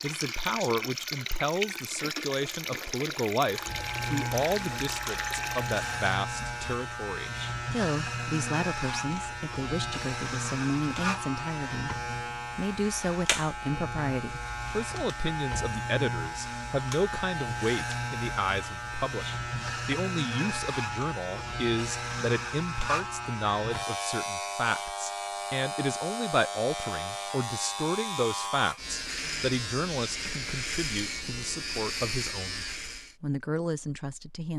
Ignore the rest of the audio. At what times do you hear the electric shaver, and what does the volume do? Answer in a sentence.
You can hear the electric shaver from 3.5 to 33.1 s, at a steady volume.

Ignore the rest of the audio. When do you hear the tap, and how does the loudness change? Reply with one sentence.
The tap can be heard from 0.0 to 6.0 s, at a steady volume.